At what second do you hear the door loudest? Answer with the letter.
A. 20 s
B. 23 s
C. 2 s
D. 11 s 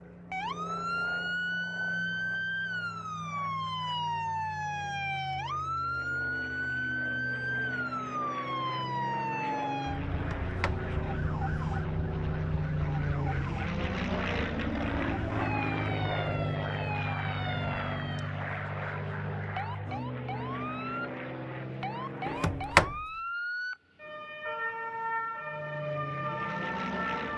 B.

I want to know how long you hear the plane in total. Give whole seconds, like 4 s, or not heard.
25 s.